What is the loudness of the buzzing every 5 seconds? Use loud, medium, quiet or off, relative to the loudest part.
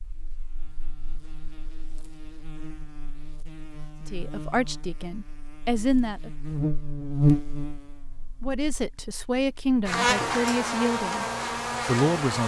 quiet, loud, loud.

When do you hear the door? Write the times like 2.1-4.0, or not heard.
not heard.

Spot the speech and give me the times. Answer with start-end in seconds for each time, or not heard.
4.1-6.3, 8.4-11.2, 11.8-12.4.